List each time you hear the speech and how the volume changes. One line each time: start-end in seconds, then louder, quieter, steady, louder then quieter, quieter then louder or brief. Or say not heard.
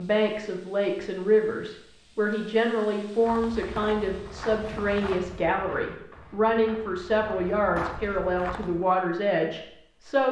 0.0-10.2 steady.